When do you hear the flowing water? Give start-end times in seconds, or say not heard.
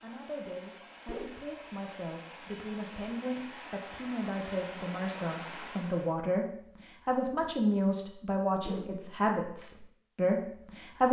0.0-6.2.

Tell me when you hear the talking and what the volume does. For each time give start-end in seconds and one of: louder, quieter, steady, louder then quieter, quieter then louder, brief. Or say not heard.
0.0-11.0 louder.